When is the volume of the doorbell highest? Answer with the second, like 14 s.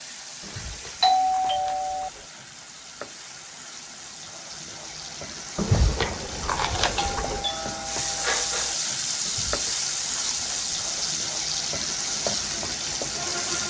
1 s.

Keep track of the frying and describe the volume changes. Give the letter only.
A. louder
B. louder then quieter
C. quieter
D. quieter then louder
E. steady
A.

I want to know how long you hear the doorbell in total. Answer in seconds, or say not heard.
3 s.